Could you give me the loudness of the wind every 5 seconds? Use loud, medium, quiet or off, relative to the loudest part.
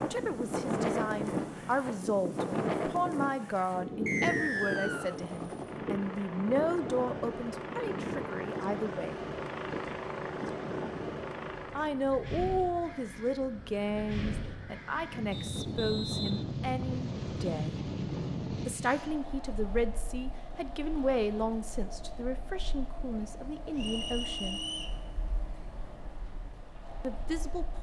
loud, medium, medium, loud, quiet, quiet.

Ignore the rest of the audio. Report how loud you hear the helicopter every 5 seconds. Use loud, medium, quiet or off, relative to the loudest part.
medium, loud, loud, off, off, off.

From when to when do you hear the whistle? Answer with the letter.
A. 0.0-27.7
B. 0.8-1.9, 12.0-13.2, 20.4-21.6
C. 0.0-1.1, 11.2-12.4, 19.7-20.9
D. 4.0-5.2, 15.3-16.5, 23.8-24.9
D.